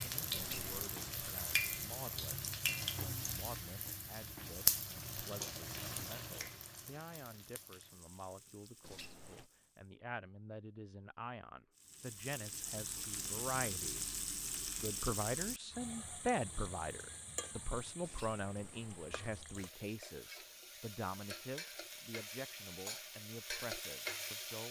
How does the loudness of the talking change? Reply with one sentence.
The loudness of the talking goes up, then down.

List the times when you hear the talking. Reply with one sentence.
You can hear the talking from 0.0 to 14.2 s and from 14.8 to 24.6 s.